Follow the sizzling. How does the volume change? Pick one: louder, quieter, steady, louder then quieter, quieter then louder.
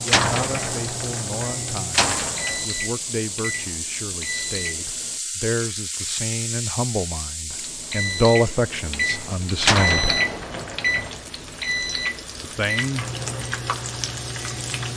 quieter then louder.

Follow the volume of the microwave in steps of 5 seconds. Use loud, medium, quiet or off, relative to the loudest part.
medium, loud, loud.